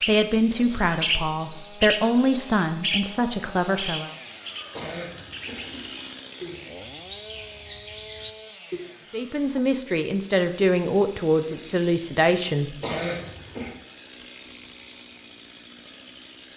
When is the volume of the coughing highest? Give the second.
13 s.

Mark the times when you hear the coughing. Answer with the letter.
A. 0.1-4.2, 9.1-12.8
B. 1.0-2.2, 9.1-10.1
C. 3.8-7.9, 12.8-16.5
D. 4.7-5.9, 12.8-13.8
D.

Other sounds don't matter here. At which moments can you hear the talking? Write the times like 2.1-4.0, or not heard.
0.1-4.2, 9.1-12.8.